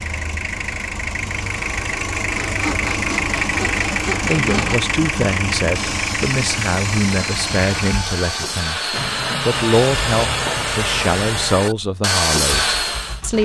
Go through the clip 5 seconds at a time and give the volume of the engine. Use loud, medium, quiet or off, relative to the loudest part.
loud, loud, medium.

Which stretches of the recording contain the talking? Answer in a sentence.
The talking can be heard from 4.2 to 13.4 s.